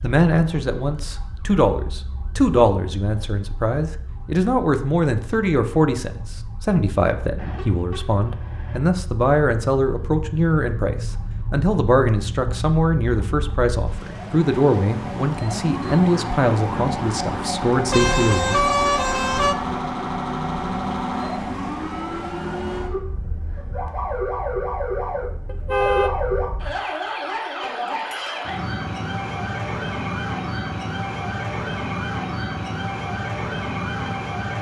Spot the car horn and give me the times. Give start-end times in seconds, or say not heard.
7.3-8.8, 17.9-19.6, 25.4-26.1.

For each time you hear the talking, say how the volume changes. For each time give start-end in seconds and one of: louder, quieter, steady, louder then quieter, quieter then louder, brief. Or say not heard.
0.0-18.6 steady.